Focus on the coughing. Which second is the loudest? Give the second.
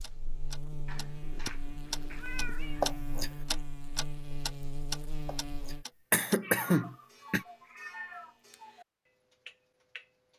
7 s.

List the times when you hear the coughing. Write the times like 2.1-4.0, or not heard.
2.8-3.3, 5.2-7.5.